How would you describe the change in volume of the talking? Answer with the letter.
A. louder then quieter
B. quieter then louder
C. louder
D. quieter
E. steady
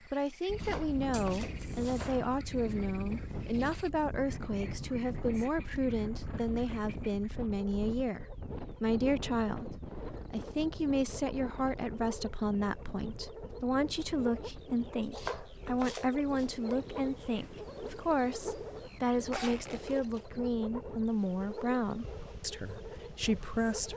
E.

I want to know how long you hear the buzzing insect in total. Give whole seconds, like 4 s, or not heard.
not heard.